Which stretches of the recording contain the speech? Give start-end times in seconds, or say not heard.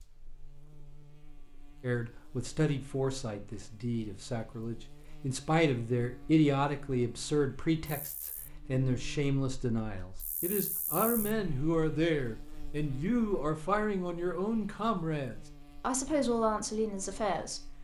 1.8-17.6.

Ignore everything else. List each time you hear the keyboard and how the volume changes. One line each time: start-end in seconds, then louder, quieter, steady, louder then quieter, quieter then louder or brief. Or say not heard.
not heard.